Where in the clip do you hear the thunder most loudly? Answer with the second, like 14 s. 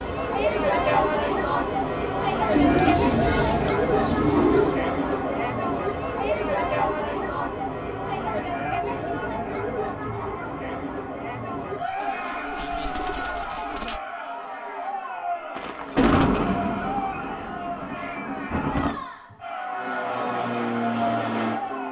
16 s.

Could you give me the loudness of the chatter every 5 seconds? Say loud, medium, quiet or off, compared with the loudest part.
loud, loud, medium, medium, medium.